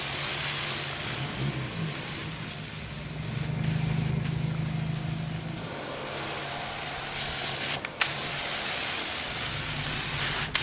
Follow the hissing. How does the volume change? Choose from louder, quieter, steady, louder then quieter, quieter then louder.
quieter then louder.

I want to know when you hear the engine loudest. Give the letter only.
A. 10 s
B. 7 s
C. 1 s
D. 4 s
D.